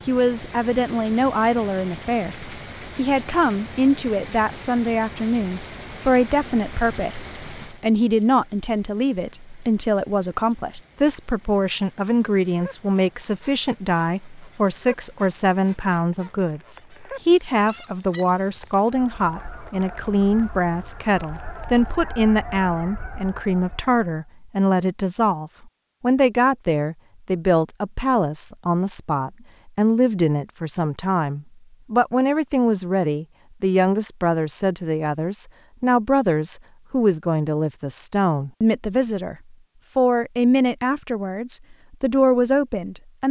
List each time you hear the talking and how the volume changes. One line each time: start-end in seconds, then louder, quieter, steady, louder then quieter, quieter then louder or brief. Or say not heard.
0.1-43.2 steady.